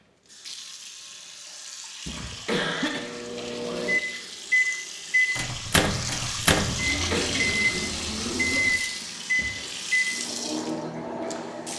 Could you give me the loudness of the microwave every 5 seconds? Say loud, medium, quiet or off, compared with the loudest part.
loud, loud, medium.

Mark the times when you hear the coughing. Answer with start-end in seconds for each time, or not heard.
2.0-3.0, 6.7-7.3.